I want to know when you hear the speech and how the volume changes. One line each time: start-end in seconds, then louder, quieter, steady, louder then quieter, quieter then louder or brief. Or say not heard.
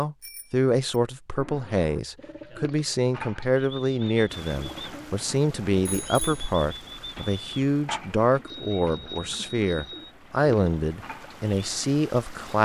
0.0-12.6 steady.